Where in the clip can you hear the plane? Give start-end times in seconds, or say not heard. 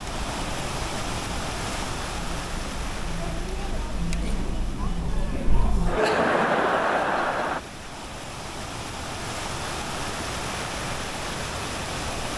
not heard.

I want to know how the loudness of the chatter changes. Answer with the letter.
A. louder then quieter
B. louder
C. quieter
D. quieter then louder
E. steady
B.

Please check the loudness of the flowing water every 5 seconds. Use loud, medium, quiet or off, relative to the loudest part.
loud, medium, loud.